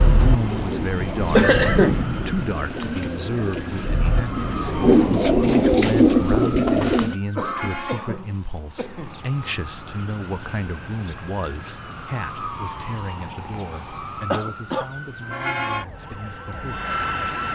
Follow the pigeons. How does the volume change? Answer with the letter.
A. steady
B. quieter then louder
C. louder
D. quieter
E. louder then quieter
C.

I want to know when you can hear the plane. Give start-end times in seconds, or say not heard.
0.0-5.0, 15.9-17.4.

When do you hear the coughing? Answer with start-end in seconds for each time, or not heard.
1.4-2.0, 7.3-9.2, 14.3-14.9.